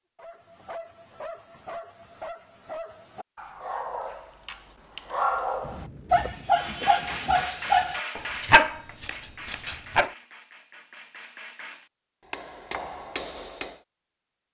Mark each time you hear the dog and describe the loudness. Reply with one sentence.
You can hear the dog from 0.1 to 10.1 s, getting louder.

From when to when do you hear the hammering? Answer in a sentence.
The hammering can be heard from 6.5 to 13.8 s.